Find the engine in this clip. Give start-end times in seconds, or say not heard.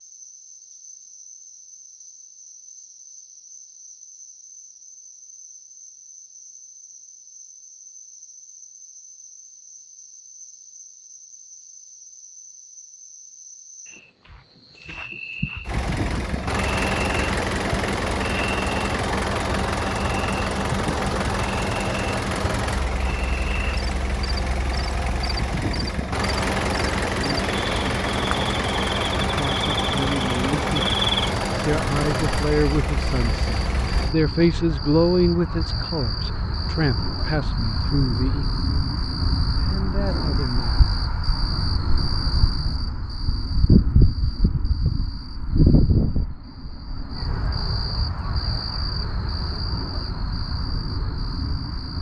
15.6-34.1.